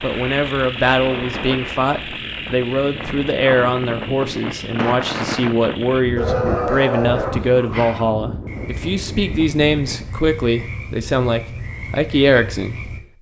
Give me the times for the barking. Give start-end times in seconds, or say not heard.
6.2-7.5.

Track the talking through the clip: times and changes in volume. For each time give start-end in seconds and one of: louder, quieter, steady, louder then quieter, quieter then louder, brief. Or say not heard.
0.0-12.9 steady.